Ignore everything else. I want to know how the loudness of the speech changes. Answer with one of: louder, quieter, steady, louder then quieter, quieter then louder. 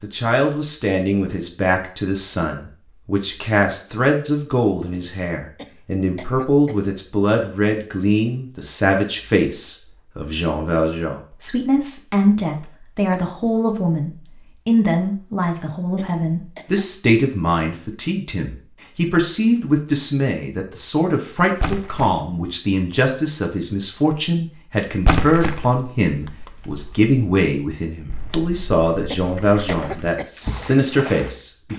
steady.